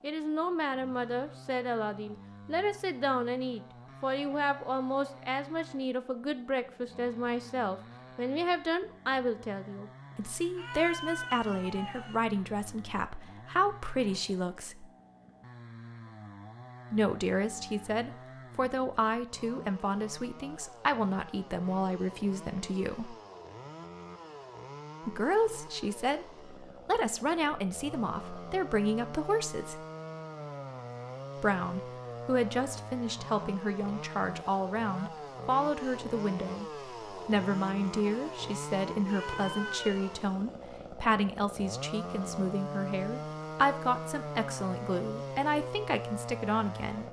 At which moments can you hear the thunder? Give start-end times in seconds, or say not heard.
not heard.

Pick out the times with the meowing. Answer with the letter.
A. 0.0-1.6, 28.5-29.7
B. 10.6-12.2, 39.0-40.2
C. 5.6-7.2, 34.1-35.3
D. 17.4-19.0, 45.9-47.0
B.